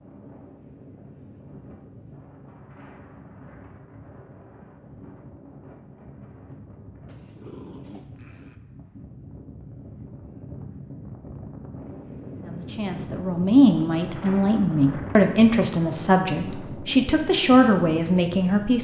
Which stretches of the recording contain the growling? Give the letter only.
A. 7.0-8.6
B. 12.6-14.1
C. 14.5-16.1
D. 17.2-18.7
A.